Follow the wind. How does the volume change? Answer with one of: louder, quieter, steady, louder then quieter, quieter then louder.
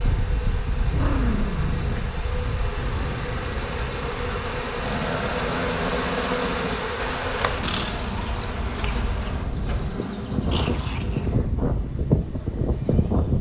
quieter then louder.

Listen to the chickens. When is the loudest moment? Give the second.
8 s.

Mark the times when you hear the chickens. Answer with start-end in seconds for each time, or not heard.
7.6-9.3.